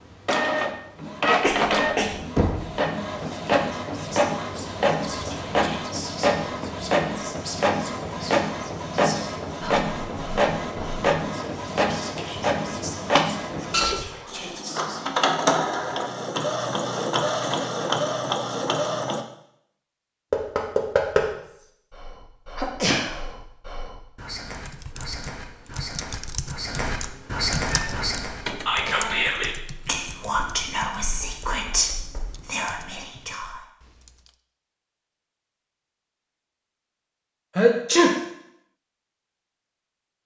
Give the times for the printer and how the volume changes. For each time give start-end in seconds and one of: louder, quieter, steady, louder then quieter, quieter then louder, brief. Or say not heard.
0.2-19.2 steady
27.7-29.2 brief.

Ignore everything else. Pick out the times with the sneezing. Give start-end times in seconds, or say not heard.
1.4-2.1, 22.6-23.1, 37.5-38.1.